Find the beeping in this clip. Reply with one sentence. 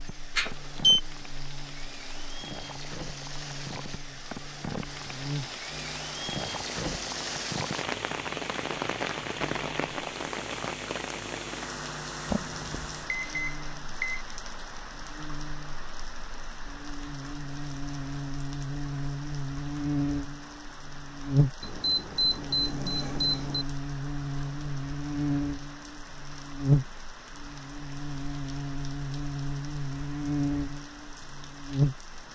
The beeping can be heard from 0.3 to 1.0 s, from 12.3 to 14.2 s and from 21.6 to 23.6 s.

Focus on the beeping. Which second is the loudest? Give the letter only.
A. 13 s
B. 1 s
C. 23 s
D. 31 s
B.